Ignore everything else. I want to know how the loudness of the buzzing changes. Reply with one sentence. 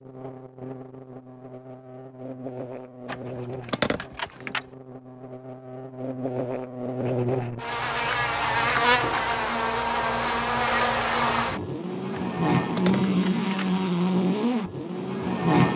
The volume of the buzzing goes up.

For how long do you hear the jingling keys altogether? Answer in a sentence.
You can hear the jingling keys for 3 seconds altogether.